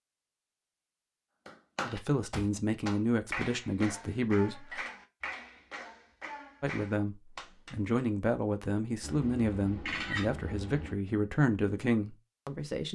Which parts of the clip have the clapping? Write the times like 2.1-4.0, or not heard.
1.4-8.0.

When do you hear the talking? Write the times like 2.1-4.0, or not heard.
1.9-4.8, 6.6-12.9.